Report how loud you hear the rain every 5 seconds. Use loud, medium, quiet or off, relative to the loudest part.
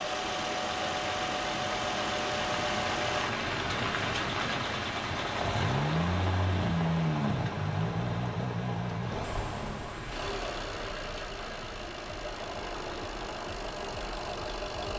loud, loud, medium.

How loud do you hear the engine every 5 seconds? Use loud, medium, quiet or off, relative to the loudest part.
loud, loud, medium.